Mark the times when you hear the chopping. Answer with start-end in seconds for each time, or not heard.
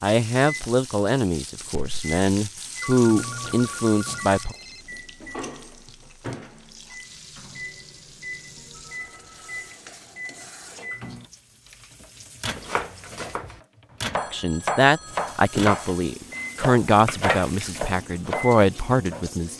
12.6-18.6.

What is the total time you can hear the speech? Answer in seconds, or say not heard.
10 s.